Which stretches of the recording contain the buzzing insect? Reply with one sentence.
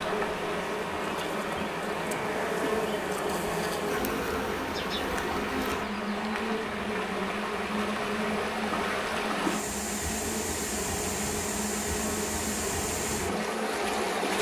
You can hear the buzzing insect from 0.0 to 14.3 s.